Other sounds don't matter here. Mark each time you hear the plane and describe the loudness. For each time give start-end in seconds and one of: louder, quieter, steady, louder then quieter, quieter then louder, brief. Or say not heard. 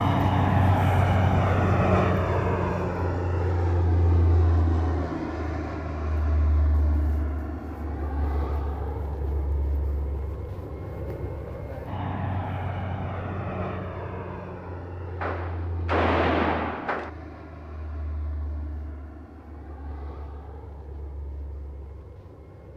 0.0-22.7 quieter.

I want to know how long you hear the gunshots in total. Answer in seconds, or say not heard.
2 s.